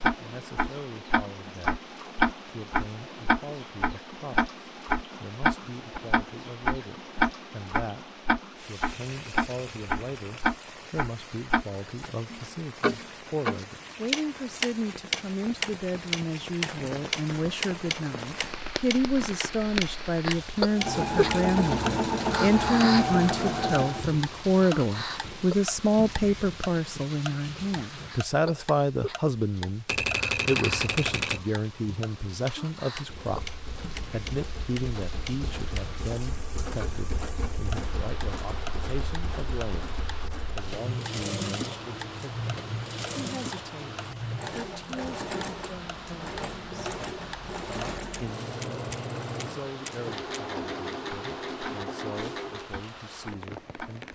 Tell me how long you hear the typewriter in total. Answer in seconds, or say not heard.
3 s.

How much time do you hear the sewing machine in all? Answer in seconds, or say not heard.
23 s.